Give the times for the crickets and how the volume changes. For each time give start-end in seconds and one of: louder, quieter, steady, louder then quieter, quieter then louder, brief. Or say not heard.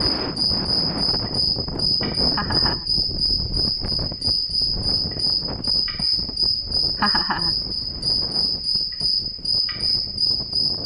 0.0-10.8 steady.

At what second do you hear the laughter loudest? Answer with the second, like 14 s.
7 s.